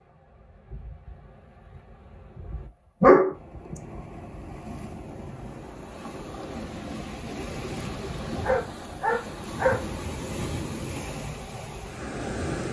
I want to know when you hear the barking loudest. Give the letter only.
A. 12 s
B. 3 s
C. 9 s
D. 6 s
B.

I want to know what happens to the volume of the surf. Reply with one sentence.
The loudness of the surf goes up.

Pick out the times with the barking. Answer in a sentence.
You can hear the barking from 3.0 to 3.8 s and from 8.4 to 9.9 s.